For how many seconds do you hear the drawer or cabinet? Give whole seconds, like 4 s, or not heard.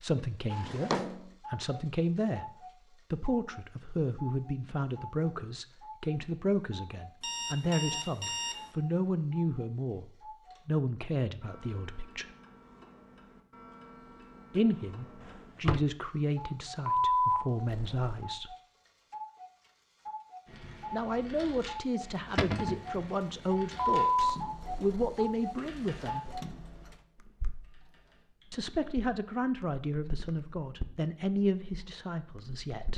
2 s.